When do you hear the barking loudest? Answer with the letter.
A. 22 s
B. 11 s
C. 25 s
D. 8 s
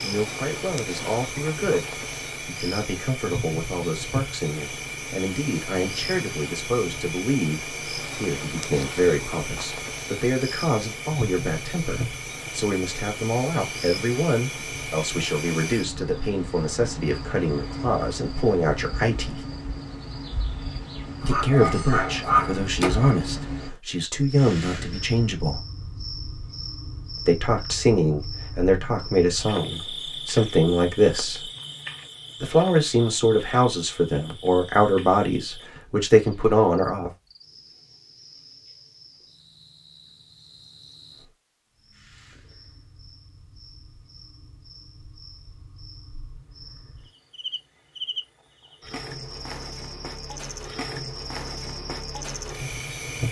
A.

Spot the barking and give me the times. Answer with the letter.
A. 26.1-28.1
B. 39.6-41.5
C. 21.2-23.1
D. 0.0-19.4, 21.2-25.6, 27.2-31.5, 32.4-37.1
C.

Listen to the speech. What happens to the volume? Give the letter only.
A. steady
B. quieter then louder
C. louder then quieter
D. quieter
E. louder
E.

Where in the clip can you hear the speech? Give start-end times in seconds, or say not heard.
0.0-19.4, 21.2-25.6, 27.2-31.5, 32.4-37.1.